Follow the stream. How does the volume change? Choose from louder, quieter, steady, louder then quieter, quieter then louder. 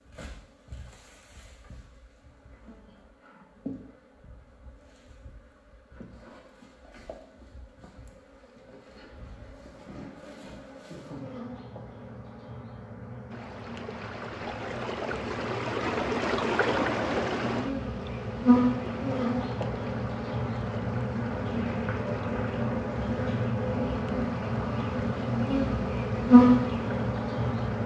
quieter.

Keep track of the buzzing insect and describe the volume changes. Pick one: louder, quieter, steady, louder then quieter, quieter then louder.
louder.